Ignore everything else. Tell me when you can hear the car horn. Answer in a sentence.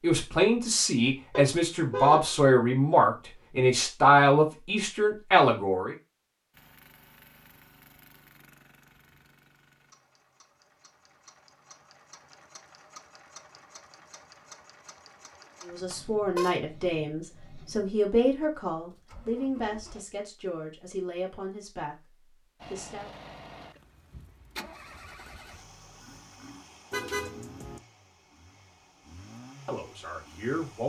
You can hear the car horn from 1.3 to 2.3 s, from 15.9 to 16.6 s and from 26.9 to 27.8 s.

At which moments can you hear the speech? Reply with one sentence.
The speech can be heard from 0.0 to 6.0 s, from 15.6 to 21.9 s, from 22.7 to 23.1 s and from 29.6 to 30.8 s.